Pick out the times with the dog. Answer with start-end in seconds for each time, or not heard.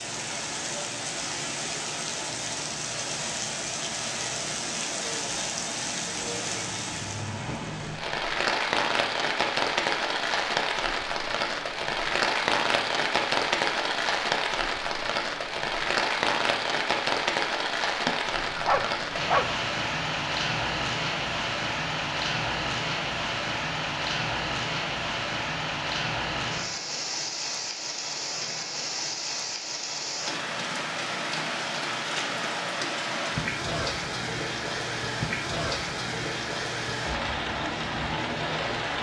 18.1-19.6.